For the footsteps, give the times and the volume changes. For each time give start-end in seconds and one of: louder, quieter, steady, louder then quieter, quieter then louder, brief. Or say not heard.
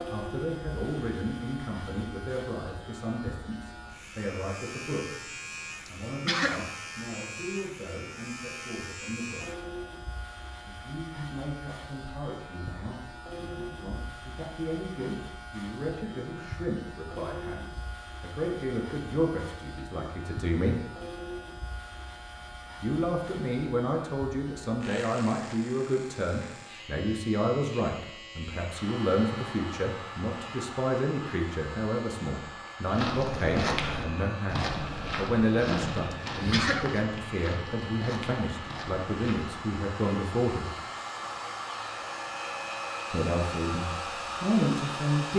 32.9-39.5 quieter.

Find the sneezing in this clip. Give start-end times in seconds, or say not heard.
5.8-6.7, 36.1-36.9.